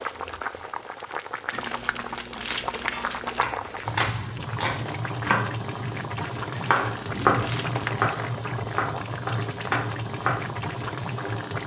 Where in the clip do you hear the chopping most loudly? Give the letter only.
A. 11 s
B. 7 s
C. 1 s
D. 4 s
B.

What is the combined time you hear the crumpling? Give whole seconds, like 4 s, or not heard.
4 s.